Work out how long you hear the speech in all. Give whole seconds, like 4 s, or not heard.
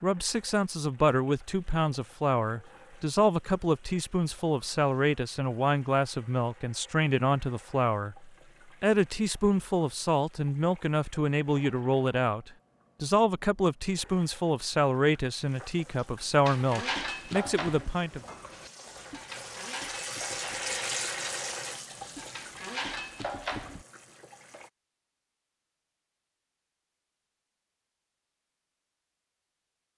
18 s.